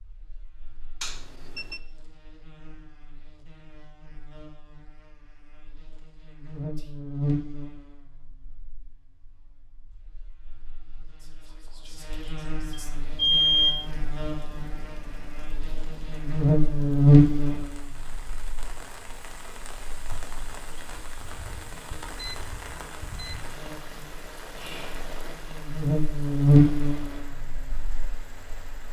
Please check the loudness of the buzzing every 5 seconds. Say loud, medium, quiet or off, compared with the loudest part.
quiet, quiet, quiet, loud, quiet, loud.